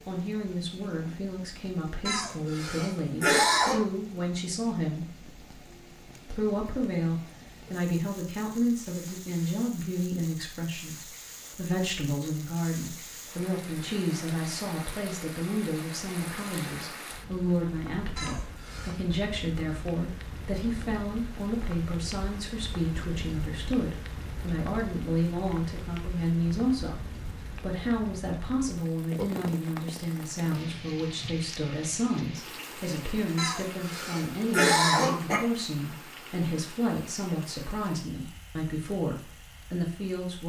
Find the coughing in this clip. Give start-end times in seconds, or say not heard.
2.0-3.8, 18.1-19.0, 33.4-35.4.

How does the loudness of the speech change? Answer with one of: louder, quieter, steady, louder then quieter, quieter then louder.
steady.